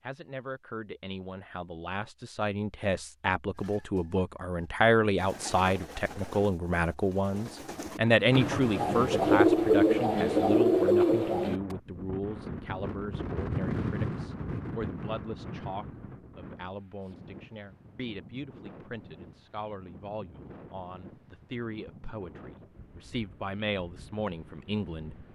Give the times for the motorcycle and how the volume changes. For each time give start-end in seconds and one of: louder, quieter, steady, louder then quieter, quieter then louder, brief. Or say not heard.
not heard.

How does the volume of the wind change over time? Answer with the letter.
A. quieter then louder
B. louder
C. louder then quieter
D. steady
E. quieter
E.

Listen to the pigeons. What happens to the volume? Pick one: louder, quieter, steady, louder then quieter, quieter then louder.
louder.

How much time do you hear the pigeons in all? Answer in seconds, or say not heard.
8 s.